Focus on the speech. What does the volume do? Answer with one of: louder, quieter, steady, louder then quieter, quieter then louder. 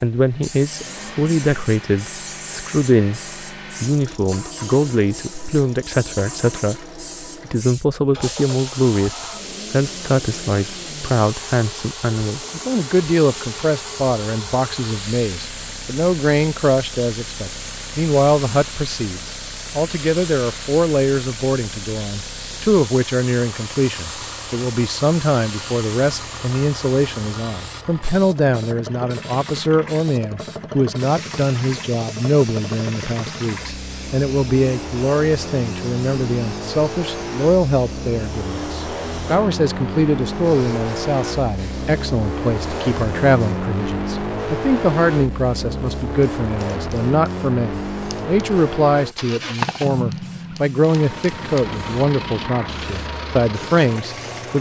steady.